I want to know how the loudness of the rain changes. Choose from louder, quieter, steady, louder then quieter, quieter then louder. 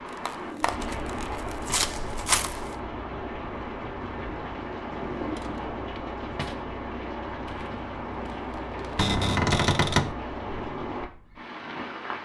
steady.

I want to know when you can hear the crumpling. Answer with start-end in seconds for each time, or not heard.
0.1-2.8, 7.5-9.1.